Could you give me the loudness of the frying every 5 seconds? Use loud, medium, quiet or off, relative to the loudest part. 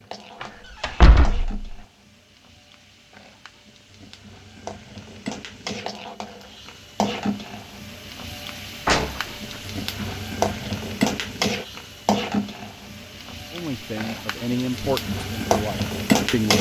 quiet, medium, medium, loud.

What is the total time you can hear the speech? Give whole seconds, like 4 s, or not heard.
3 s.